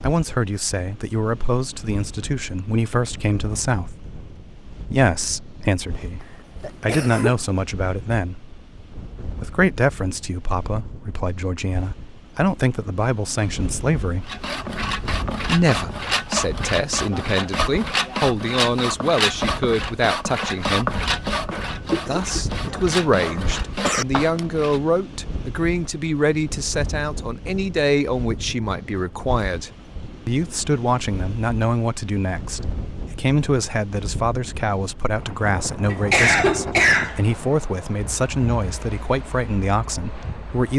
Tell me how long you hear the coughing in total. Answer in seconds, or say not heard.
4 s.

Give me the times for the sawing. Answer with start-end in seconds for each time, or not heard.
14.2-24.8.